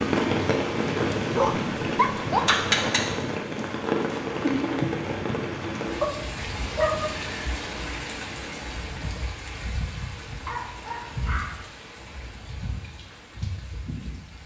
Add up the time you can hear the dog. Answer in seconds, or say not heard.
4 s.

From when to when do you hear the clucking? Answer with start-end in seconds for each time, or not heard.
not heard.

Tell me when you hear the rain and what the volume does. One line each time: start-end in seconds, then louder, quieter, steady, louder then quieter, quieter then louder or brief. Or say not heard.
0.0-14.4 quieter.